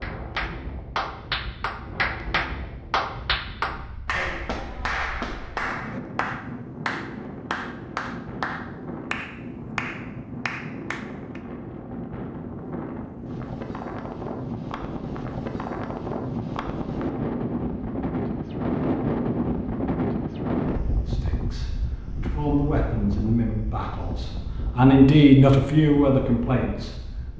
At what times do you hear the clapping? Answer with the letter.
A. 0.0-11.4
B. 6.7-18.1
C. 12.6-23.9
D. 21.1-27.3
A.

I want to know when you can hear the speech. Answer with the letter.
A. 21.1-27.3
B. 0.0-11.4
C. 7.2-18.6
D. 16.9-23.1
A.